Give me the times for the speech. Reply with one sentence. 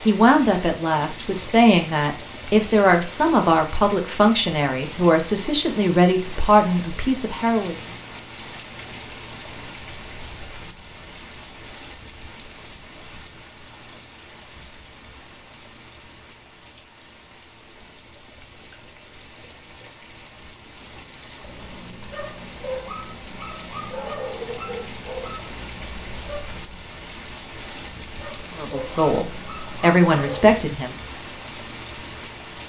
You can hear the speech from 0.1 to 7.8 s and from 28.6 to 30.9 s.